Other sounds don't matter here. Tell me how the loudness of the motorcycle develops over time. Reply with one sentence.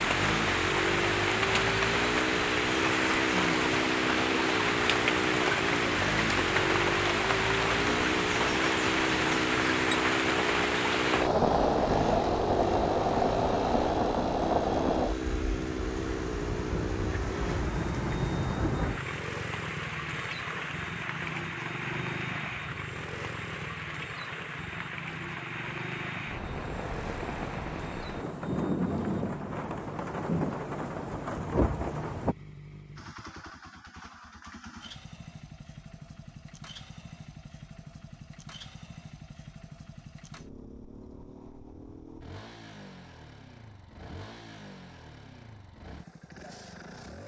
The volume of the motorcycle goes down.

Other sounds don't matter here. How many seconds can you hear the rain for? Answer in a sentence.
You can hear the rain for 32 seconds altogether.